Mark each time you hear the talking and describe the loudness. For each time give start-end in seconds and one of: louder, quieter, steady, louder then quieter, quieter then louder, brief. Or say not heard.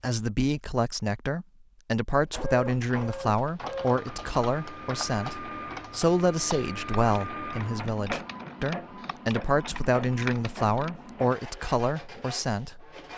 0.0-12.8 steady.